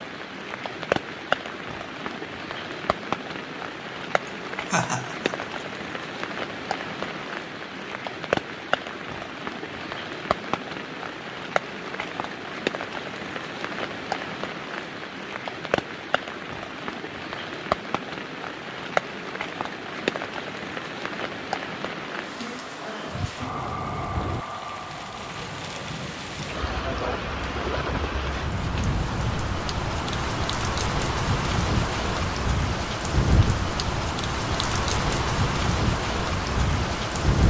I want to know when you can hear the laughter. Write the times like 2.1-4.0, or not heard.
4.2-5.5.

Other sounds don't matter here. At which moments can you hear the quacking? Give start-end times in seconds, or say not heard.
not heard.